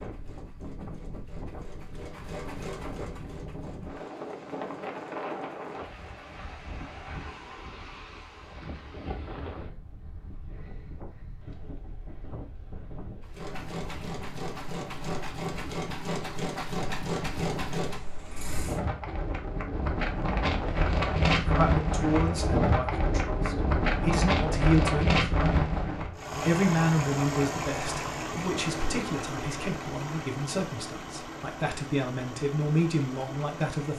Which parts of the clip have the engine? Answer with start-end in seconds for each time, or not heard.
0.0-6.2, 13.2-18.8, 26.1-33.9.